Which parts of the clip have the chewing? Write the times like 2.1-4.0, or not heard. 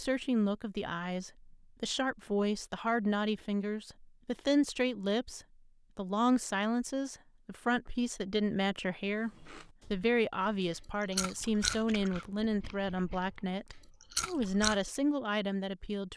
9.4-14.8.